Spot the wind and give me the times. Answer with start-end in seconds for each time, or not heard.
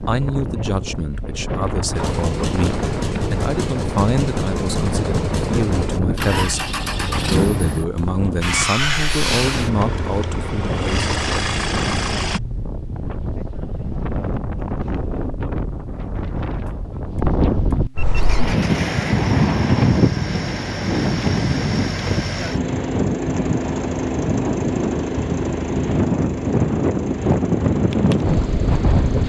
0.0-29.2.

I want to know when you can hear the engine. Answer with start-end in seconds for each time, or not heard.
1.9-12.4, 18.1-29.2.